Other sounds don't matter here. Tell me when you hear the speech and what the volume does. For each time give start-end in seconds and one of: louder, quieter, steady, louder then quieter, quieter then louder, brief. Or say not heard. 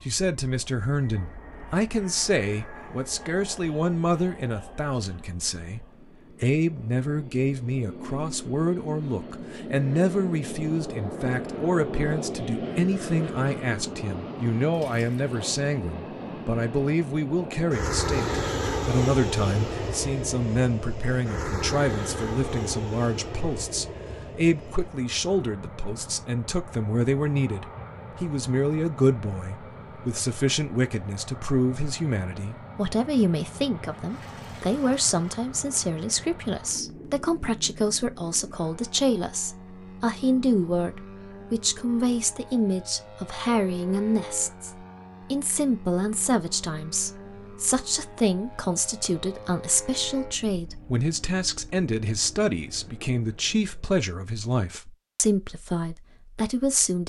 0.0-57.0 steady.